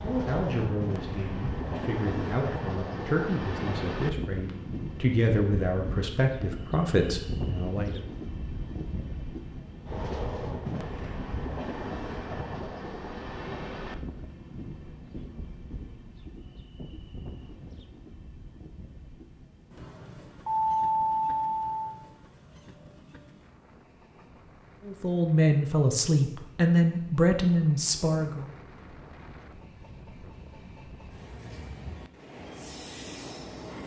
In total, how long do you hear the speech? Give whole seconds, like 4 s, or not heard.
12 s.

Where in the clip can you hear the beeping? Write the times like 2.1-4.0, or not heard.
20.4-21.9.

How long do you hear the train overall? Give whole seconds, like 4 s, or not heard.
34 s.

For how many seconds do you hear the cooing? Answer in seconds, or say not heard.
not heard.